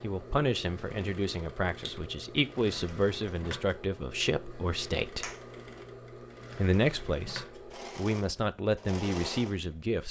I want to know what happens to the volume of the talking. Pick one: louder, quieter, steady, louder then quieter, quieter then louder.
steady.